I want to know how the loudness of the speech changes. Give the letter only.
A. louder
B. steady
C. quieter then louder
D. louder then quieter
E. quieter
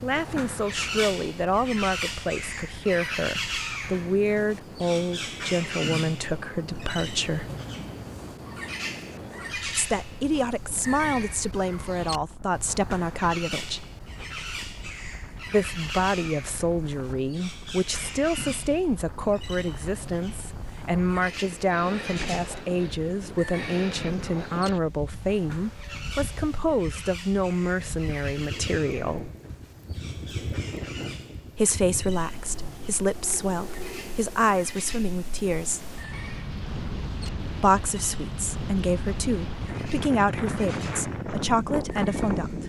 B.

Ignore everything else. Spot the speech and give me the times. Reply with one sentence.
You can hear the speech from 0.0 to 7.5 s, from 9.7 to 13.8 s, from 15.4 to 29.3 s, from 31.6 to 35.9 s and from 37.6 to 42.6 s.